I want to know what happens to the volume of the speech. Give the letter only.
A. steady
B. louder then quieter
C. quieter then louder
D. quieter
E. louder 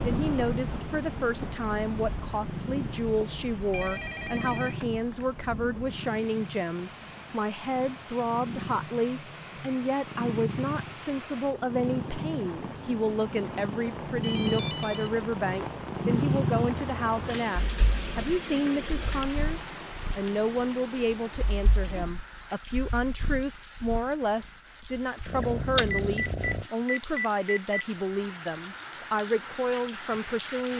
A.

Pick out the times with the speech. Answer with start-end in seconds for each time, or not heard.
0.0-30.7.